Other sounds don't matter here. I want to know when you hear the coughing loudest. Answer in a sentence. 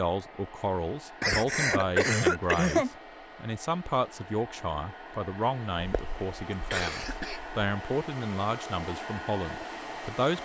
The loudest moment of the coughing is at 2 seconds.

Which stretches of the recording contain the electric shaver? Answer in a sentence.
The electric shaver can't be heard in this clip.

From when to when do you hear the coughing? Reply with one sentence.
You can hear the coughing from 1.2 to 2.9 s and from 5.8 to 7.6 s.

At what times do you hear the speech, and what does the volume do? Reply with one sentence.
You can hear the speech from 0.0 to 10.3 s, at a steady volume.